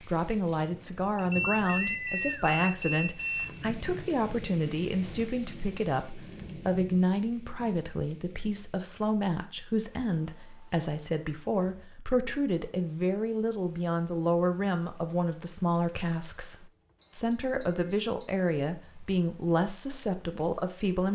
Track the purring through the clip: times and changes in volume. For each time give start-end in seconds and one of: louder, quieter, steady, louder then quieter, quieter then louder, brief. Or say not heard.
not heard.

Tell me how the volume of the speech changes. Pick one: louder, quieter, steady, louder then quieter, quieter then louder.
steady.